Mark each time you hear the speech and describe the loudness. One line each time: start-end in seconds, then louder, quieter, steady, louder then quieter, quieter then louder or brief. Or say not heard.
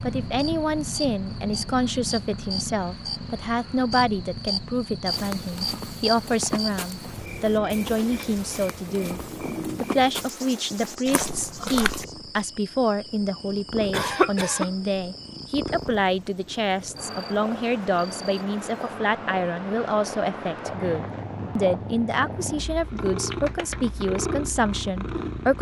0.0-25.5 steady.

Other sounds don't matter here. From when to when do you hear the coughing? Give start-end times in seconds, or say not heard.
13.9-14.7.